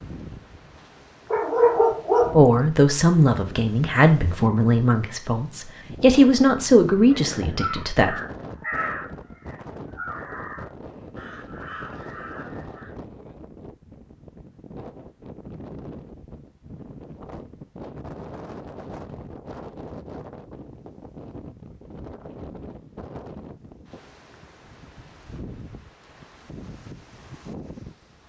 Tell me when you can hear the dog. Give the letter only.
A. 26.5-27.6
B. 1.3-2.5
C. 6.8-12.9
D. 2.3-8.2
B.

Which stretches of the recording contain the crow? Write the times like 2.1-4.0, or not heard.
6.8-12.9.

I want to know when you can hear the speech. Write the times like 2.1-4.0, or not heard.
2.3-8.2.